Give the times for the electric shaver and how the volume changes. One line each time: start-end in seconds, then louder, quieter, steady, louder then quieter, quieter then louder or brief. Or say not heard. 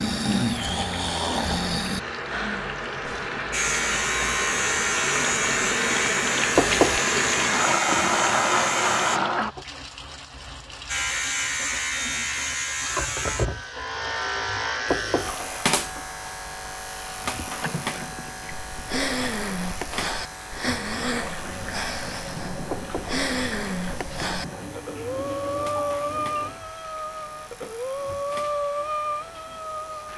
3.5-9.2 steady
10.8-30.1 quieter.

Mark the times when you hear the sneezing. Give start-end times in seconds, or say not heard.
not heard.